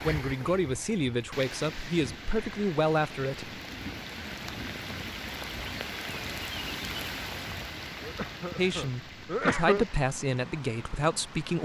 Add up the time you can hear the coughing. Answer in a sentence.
You can hear the coughing for 2 seconds altogether.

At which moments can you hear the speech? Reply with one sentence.
You can hear the speech from 0.0 to 3.5 s and from 8.6 to 11.6 s.